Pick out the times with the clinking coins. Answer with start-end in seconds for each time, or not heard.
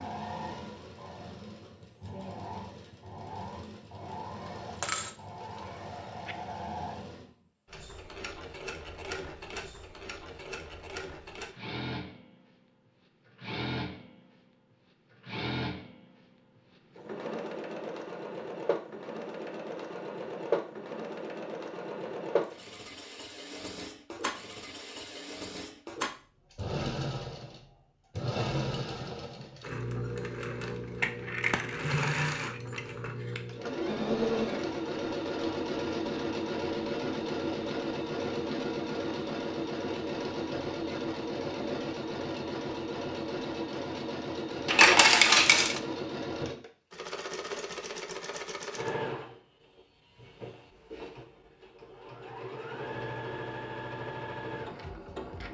4.8-6.3, 31.0-33.0, 44.6-45.8.